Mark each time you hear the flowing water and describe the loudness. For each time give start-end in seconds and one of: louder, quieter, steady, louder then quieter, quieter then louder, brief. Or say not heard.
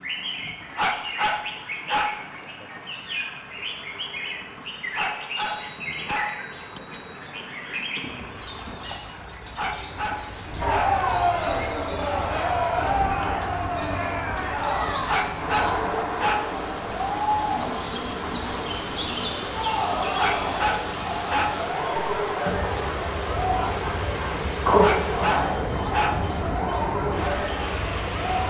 0.0-28.4 louder.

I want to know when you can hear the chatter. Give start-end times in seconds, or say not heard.
10.6-28.4.